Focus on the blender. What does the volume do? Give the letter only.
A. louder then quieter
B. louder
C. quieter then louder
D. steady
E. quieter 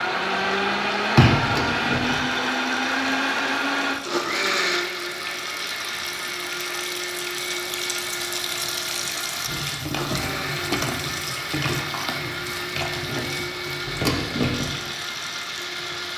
E.